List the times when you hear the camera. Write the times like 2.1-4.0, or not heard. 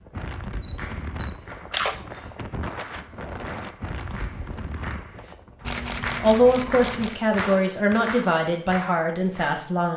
0.6-2.2, 5.6-7.2.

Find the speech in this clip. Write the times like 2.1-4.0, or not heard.
6.2-9.9.